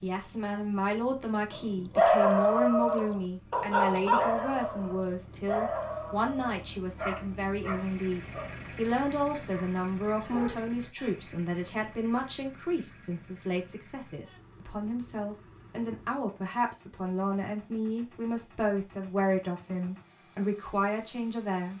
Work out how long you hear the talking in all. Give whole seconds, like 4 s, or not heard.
22 s.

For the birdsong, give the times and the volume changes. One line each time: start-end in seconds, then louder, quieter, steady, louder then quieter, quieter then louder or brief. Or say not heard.
not heard.